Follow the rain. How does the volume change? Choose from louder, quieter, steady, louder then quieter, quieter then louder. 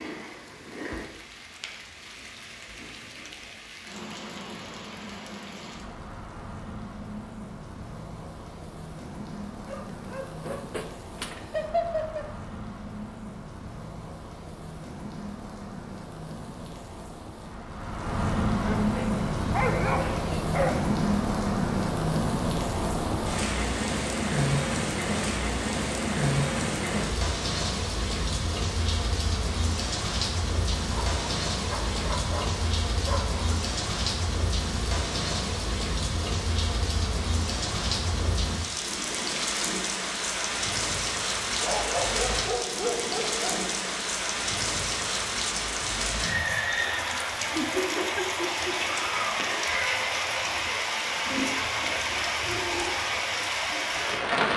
louder.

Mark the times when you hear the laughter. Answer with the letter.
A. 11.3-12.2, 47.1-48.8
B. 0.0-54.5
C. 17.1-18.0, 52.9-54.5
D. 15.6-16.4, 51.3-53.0
A.